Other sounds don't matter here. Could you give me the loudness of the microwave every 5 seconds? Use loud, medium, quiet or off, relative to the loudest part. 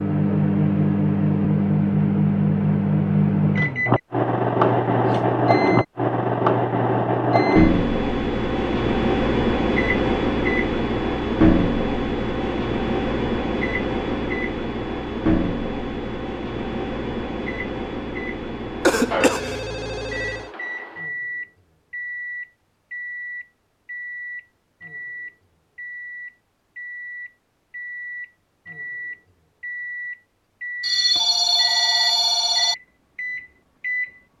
loud, loud, loud, medium, quiet, quiet, medium.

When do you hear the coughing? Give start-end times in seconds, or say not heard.
18.9-19.6.